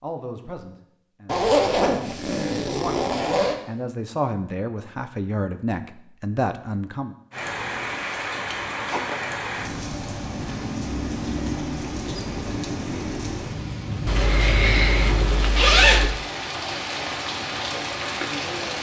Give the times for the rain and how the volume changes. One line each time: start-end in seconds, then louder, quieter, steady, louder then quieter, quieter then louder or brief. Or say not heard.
7.3-18.7 steady.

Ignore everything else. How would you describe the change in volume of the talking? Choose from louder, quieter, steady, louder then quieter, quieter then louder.
louder.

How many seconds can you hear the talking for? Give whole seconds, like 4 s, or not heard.
7 s.